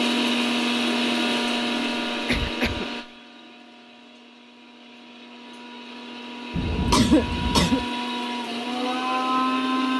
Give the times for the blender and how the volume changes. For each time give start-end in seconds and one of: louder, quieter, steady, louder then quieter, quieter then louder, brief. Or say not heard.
0.0-9.9 quieter then louder.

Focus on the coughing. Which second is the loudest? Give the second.
7 s.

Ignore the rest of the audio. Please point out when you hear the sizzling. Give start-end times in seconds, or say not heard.
not heard.